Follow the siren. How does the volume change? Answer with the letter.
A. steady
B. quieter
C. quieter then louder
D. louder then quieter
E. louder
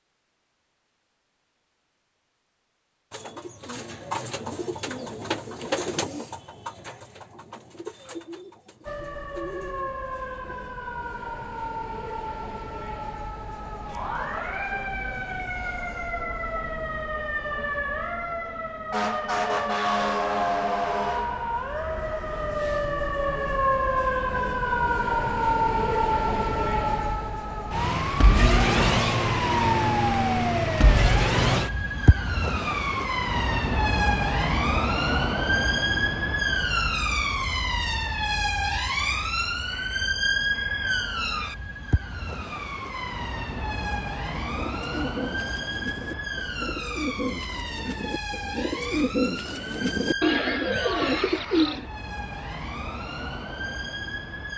D.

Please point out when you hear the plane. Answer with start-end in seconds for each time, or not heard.
not heard.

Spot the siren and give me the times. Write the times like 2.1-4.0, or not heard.
8.8-54.5.